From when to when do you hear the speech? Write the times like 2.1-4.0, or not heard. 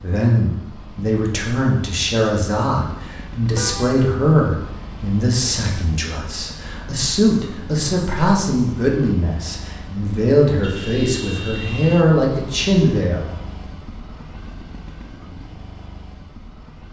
0.0-13.3.